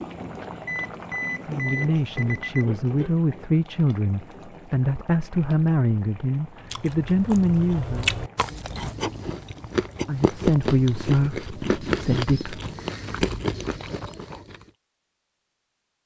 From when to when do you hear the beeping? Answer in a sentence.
The beeping can be heard from 0.7 to 2.6 s.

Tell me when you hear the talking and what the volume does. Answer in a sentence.
You can hear the talking from 1.4 to 8.1 s, at a steady volume; and briefly from 10.1 to 12.6 s.